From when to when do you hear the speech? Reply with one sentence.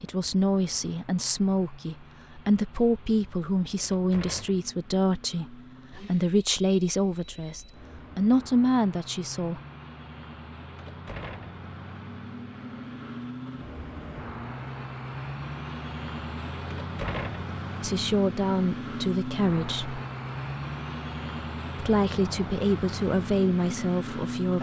You can hear the speech from 0.0 to 9.6 s, from 17.8 to 20.0 s and from 21.8 to 24.5 s.